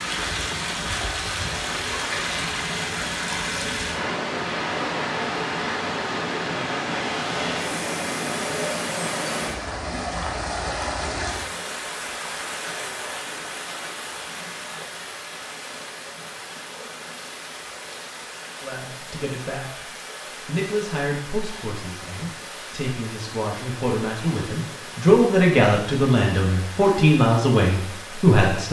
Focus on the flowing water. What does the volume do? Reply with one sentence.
The loudness of the flowing water goes down.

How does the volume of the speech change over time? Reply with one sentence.
The loudness of the speech goes up.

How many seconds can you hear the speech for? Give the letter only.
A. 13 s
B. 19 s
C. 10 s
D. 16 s
C.